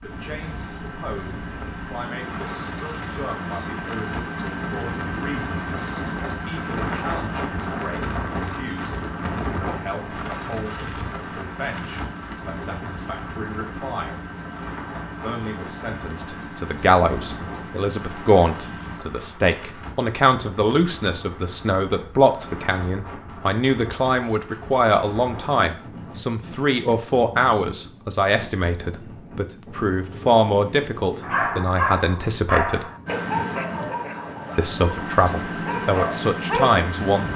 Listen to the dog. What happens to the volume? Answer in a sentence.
The loudness of the dog goes down, then up.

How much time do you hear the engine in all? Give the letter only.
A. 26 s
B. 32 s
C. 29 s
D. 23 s
D.